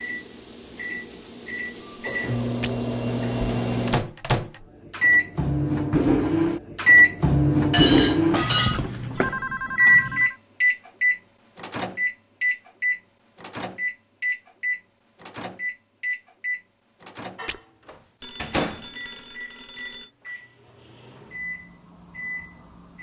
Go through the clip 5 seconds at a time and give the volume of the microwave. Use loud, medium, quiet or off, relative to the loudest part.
medium, loud, medium, quiet, quiet.